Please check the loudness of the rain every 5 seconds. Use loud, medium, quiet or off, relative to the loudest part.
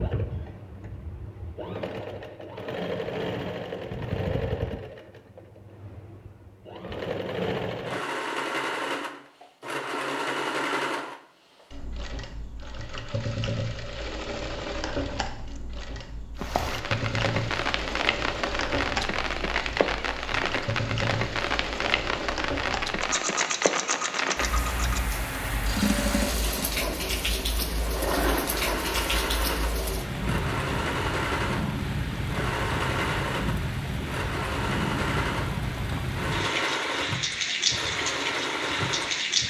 off, off, off, loud, loud, loud, loud, loud.